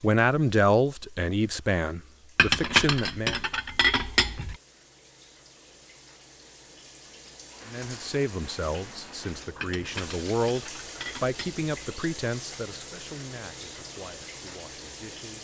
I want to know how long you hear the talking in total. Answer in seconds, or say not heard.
11 s.